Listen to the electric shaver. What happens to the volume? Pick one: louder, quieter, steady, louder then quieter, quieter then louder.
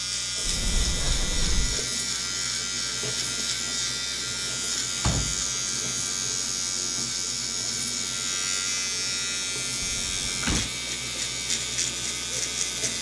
steady.